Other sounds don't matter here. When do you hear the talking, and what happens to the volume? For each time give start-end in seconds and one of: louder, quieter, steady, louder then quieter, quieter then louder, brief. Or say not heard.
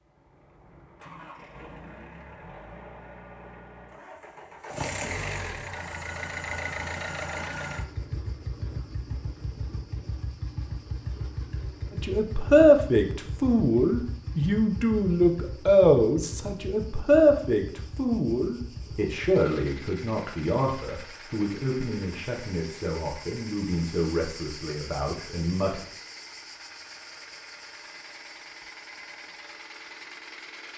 11.9-25.9 quieter.